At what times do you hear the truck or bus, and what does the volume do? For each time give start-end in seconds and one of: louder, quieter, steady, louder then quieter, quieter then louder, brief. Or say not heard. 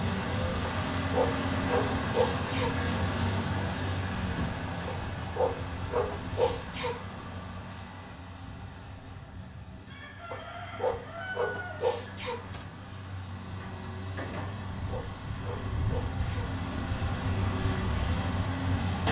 0.0-19.0 quieter then louder.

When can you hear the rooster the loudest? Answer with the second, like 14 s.
11 s.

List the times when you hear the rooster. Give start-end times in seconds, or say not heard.
9.7-12.2.